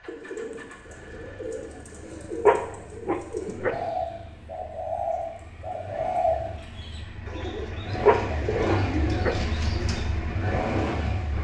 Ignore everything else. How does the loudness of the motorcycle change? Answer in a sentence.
The volume of the motorcycle goes up.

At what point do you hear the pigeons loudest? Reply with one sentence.
The volume of the pigeons peaks at 6 seconds.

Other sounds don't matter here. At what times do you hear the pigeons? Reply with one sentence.
You can hear the pigeons from 0.1 to 10.1 s.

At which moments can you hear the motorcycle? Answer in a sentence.
You can hear the motorcycle from 0.0 to 11.3 s.